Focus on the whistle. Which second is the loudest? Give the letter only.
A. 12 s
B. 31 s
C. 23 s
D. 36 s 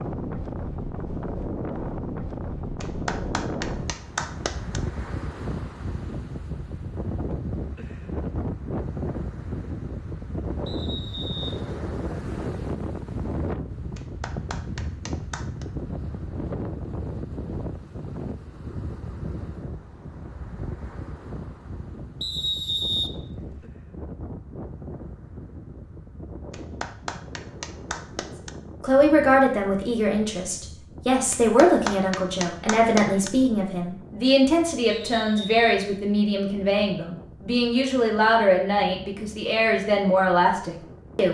C.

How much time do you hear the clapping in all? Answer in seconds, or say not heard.
8 s.